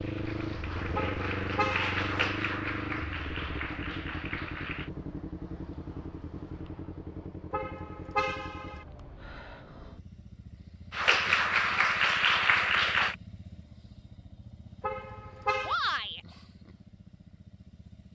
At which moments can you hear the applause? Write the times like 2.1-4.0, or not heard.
0.0-4.9, 10.9-13.2.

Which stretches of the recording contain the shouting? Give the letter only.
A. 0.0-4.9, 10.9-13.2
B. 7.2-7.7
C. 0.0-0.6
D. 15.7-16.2
D.